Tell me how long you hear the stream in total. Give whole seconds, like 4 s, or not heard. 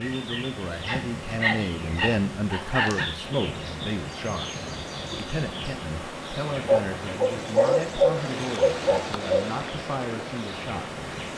8 s.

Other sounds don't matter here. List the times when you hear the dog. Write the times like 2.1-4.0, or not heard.
0.8-3.1, 6.7-9.4.